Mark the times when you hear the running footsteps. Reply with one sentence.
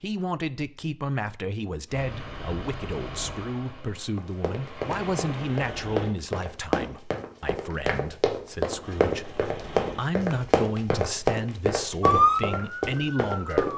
You can hear the running footsteps from 4.2 to 13.7 s.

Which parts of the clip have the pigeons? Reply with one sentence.
The pigeons can't be heard in this clip.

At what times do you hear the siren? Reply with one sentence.
The siren can be heard from 12.0 to 13.7 s.